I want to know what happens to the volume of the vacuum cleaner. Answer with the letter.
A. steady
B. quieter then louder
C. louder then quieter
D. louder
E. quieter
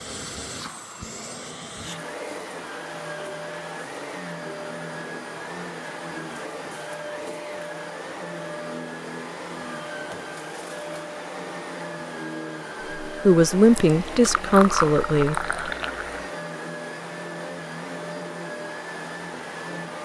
A.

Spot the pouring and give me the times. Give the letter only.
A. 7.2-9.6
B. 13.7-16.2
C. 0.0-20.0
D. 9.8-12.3
B.